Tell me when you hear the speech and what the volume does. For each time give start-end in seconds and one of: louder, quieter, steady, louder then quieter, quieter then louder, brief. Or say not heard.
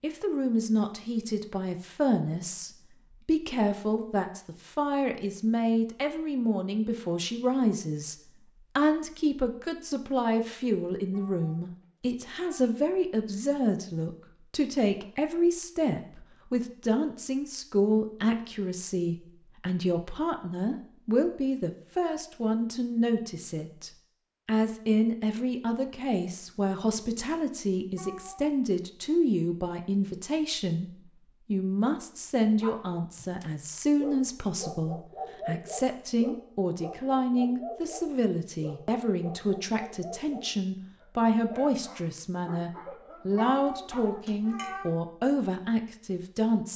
0.0-46.7 steady.